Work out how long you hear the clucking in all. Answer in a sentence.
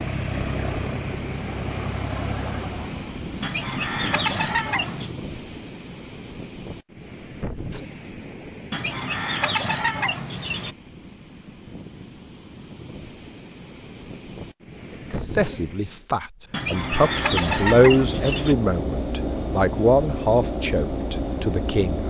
The clucking can be heard for 6 seconds in total.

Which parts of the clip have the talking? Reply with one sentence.
The talking can be heard from 15.1 to 22.0 s.